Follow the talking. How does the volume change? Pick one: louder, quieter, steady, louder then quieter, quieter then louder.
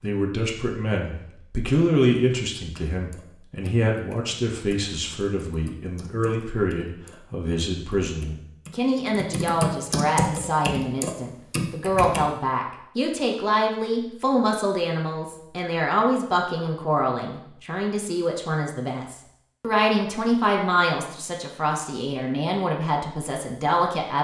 steady.